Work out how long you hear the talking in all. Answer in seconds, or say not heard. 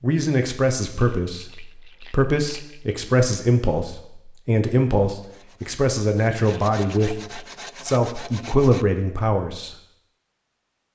10 s.